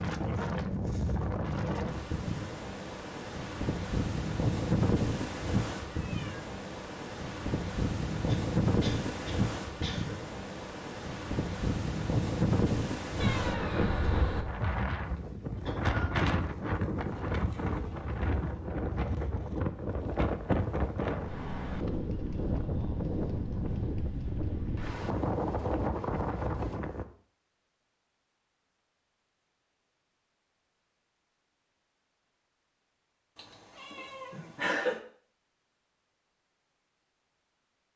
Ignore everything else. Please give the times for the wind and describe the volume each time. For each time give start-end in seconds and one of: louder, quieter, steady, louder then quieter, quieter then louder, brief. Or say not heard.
0.0-27.1 steady.